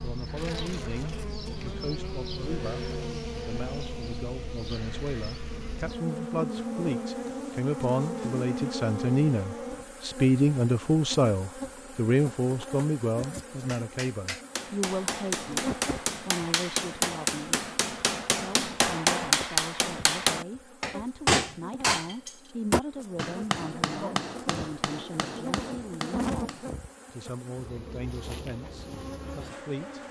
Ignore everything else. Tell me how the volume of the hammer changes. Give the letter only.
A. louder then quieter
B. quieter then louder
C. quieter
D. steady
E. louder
A.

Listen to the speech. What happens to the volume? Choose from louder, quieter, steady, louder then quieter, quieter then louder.
louder then quieter.